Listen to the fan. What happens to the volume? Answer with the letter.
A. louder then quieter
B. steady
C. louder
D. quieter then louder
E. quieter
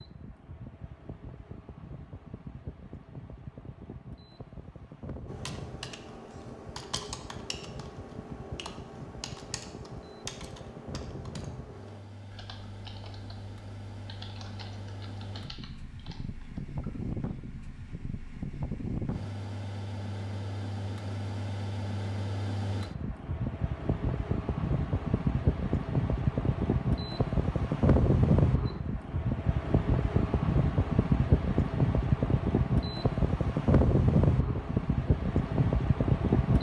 C.